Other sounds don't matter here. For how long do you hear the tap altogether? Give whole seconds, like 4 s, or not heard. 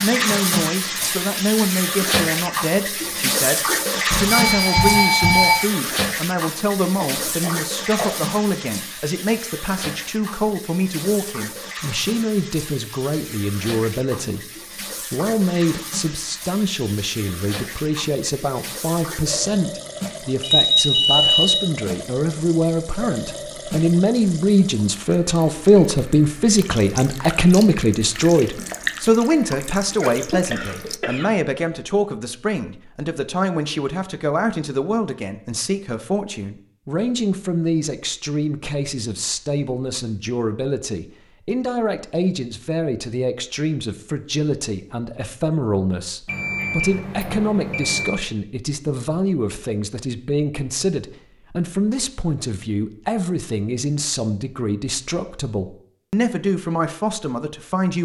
31 s.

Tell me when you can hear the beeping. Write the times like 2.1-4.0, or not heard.
4.1-5.6, 20.4-21.6, 46.2-48.1.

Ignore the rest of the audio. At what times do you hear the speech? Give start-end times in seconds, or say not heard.
0.0-14.4, 15.1-58.0.